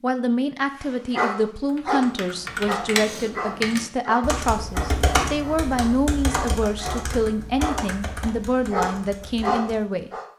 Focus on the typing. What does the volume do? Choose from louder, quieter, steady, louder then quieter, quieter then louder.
quieter.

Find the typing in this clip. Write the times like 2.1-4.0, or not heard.
1.6-9.9.